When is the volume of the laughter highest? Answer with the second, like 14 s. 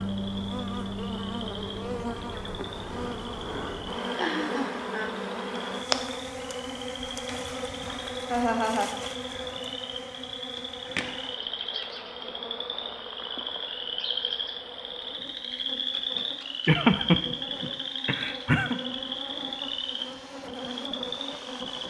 17 s.